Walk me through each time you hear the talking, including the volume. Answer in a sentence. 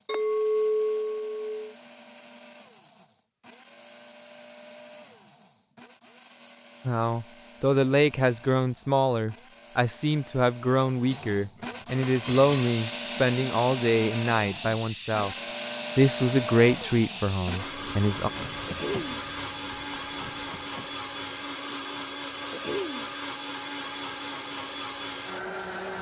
You can hear the talking from 6.8 to 15.3 s, at a steady volume; and briefly from 15.9 to 18.3 s.